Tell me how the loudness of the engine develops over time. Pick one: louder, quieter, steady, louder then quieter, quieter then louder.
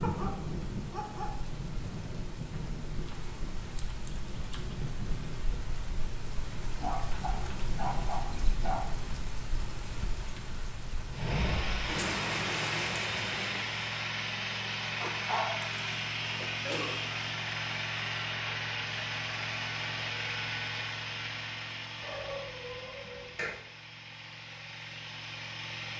quieter.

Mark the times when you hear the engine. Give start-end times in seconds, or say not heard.
11.1-25.9.